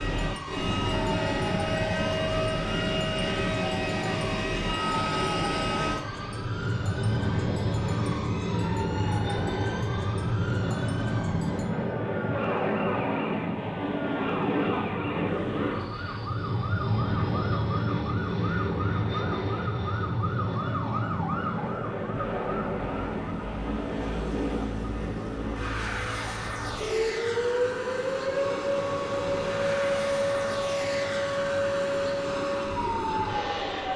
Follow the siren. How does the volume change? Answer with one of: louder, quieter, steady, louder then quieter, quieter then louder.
louder.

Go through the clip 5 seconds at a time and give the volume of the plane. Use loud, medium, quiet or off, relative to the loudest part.
loud, loud, loud, loud, loud, medium, medium.